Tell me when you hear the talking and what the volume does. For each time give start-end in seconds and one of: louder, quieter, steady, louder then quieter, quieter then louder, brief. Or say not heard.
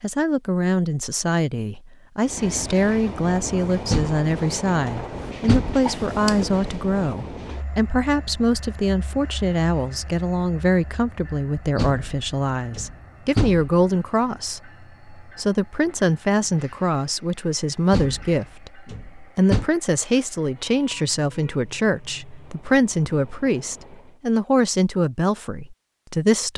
0.0-26.5 steady.